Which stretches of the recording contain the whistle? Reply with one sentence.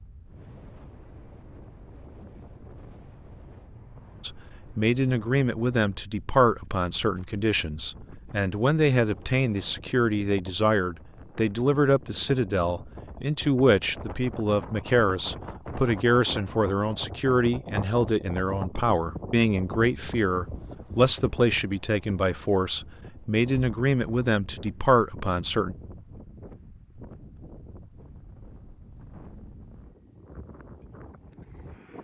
You can't hear the whistle here.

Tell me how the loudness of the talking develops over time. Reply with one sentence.
The volume of the talking stays about the same.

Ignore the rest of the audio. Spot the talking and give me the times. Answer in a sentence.
You can hear the talking from 4.2 to 25.8 s.